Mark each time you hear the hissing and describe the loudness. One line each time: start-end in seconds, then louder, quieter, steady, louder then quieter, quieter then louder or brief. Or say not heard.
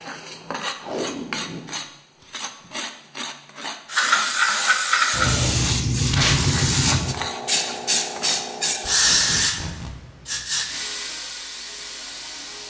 3.9-12.6 quieter.